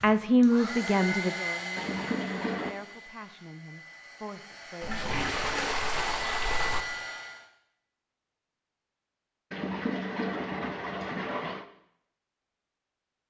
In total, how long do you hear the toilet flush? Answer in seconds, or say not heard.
5 s.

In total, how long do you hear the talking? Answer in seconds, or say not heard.
5 s.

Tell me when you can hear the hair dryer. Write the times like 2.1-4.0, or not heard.
0.0-7.5.